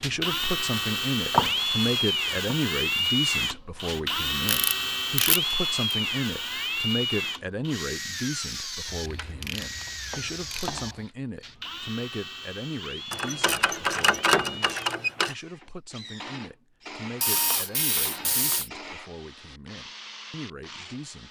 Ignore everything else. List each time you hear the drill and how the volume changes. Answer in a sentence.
You can hear the drill from 0.0 to 21.2 s, getting quieter.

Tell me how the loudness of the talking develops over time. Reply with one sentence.
The loudness of the talking goes down.